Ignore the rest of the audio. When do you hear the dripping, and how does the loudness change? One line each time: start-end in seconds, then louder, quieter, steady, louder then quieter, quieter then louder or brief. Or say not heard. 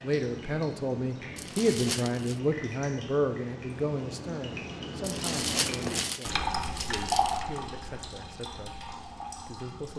0.0-9.9 louder then quieter.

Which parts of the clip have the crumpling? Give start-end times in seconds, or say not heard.
1.4-2.4, 5.0-7.4.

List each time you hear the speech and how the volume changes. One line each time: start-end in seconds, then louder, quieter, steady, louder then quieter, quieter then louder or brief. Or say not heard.
0.0-9.9 quieter.